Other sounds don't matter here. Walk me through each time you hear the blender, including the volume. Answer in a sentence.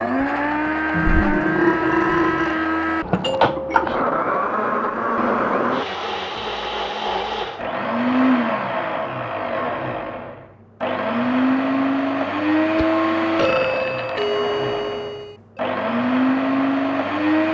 You can hear the blender from 0.0 to 17.4 s, at a steady volume.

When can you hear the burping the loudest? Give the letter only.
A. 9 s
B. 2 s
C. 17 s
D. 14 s
B.